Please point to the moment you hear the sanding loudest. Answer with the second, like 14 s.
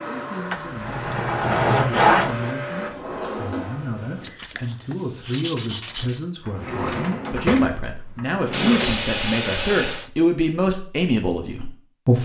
2 s.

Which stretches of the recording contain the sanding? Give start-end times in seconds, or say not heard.
0.5-2.5, 4.2-6.2, 8.5-10.1.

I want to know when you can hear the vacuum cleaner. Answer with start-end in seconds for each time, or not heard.
0.0-2.9.